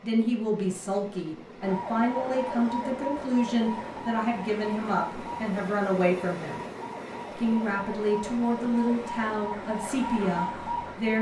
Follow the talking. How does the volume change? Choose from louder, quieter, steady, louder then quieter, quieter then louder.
steady.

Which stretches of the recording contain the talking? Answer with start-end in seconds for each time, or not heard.
0.0-6.6, 7.3-11.1.